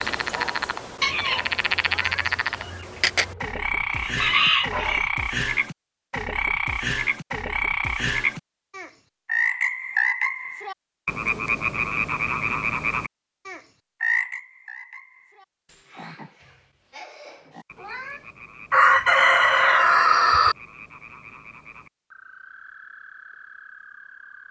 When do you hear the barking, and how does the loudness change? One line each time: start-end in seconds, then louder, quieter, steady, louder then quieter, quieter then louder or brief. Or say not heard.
not heard.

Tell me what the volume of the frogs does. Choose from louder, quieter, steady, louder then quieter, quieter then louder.
quieter.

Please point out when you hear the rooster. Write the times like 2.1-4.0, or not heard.
1.0-5.1, 18.7-20.6.